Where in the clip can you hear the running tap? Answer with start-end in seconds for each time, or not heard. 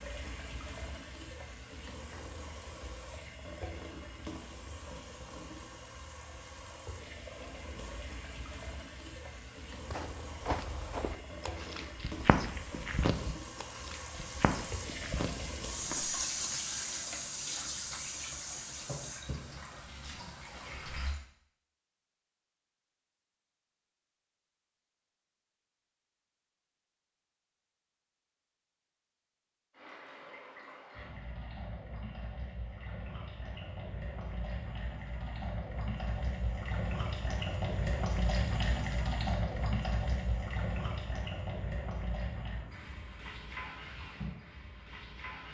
0.0-21.2, 29.7-45.4.